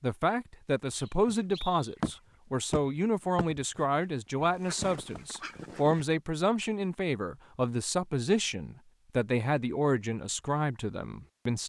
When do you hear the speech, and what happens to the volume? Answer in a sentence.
You can hear the speech from 0.0 to 11.6 s, at a steady volume.